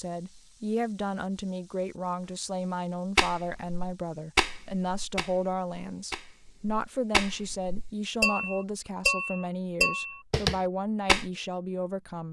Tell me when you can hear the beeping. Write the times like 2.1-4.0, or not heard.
not heard.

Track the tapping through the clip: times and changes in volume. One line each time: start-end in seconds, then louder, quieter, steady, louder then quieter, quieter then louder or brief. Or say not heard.
3.1-11.3 quieter then louder.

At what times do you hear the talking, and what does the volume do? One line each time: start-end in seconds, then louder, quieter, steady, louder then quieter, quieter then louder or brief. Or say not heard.
0.0-12.2 steady.